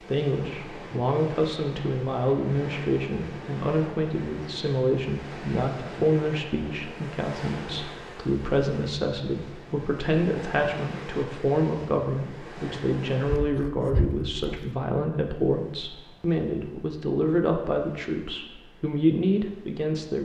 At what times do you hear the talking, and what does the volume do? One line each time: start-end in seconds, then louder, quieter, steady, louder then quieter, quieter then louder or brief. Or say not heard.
0.1-20.2 steady.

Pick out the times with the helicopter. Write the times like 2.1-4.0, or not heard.
not heard.